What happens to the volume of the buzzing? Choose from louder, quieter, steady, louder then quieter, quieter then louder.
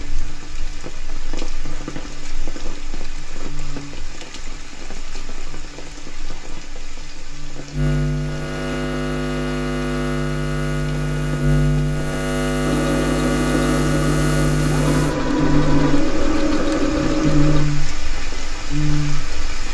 louder.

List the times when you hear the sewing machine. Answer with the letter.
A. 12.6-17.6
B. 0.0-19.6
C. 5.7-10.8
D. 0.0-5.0
A.